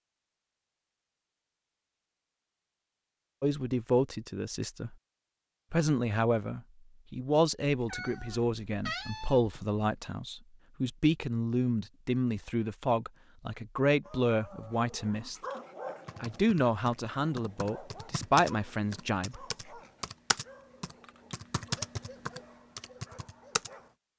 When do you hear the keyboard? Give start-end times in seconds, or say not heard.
16.1-23.7.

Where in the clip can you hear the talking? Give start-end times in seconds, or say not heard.
3.4-5.0, 5.7-15.3, 16.2-19.4.